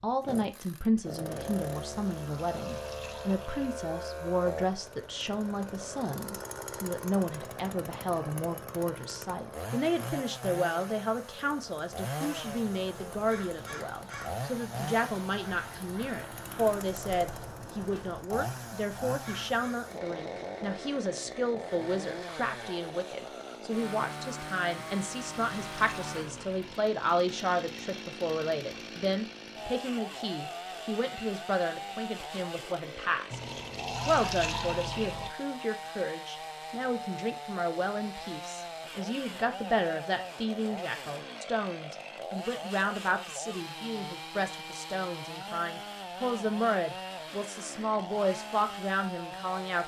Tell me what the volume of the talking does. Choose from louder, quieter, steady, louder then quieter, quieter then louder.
steady.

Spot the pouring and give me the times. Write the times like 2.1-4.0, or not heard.
1.9-3.8, 24.8-26.8, 33.3-35.3.